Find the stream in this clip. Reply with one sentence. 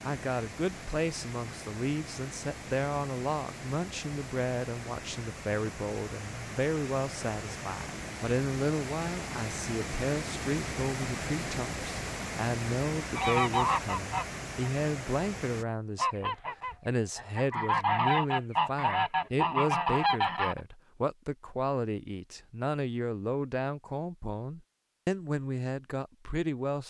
The stream can be heard from 0.0 to 15.7 s.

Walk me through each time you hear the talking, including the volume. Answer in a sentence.
You can hear the talking from 0.1 to 26.8 s, at a steady volume.